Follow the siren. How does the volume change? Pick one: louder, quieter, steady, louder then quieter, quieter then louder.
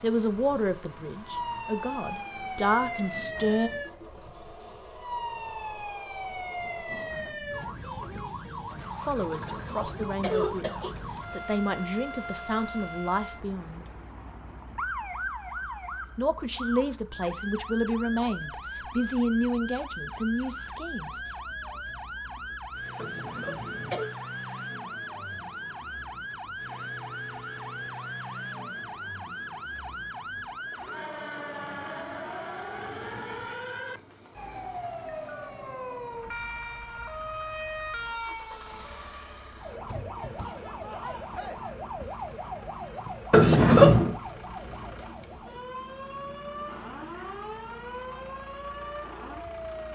steady.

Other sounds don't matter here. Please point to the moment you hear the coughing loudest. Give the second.
44 s.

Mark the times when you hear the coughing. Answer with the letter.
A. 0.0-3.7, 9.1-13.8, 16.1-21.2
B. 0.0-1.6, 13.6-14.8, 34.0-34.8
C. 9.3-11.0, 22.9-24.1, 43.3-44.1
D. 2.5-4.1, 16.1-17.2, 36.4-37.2
C.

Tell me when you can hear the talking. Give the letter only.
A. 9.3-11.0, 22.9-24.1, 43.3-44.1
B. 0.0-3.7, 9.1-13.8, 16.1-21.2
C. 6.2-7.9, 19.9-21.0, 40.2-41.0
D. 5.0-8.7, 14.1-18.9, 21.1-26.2
B.